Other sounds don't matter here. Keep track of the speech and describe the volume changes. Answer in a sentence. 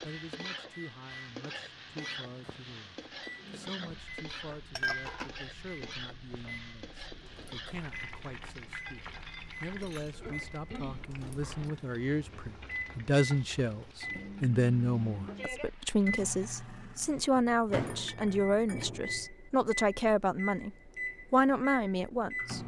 The volume of the speech goes up.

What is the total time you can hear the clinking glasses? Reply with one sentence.
You can hear the clinking glasses for 3 seconds altogether.